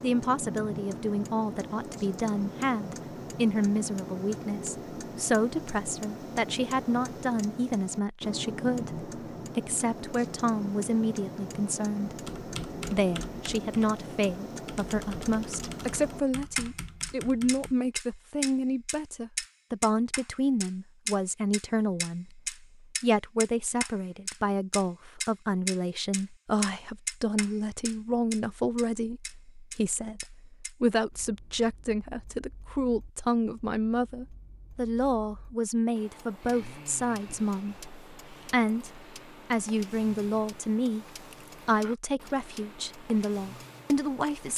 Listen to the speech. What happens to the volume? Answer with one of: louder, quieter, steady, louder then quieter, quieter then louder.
steady.